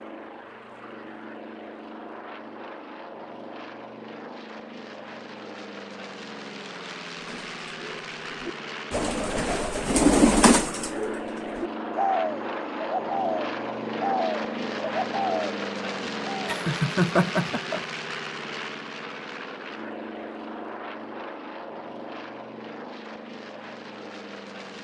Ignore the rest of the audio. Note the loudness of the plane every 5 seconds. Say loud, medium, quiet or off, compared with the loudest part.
medium, medium, loud, loud, medium.